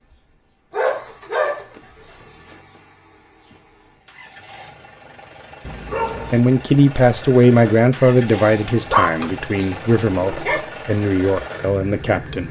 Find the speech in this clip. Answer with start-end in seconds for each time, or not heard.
6.3-12.4.